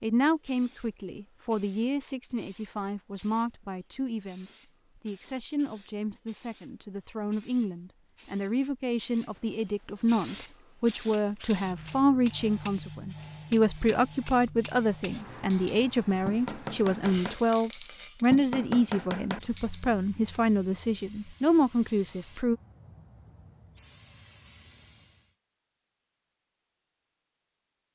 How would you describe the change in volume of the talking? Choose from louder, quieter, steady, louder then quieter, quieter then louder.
louder.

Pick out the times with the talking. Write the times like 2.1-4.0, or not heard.
0.0-22.6.